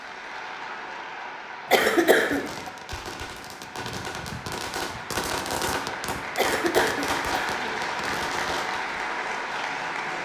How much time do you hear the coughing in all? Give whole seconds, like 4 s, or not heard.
2 s.